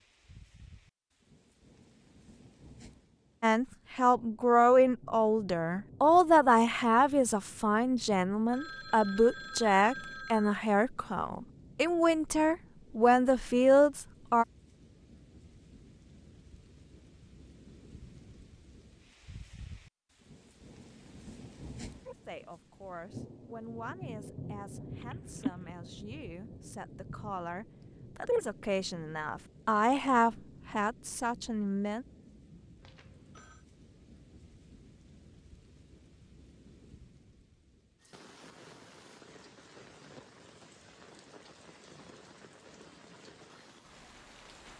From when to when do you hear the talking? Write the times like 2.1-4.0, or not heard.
3.4-14.4, 22.1-32.0.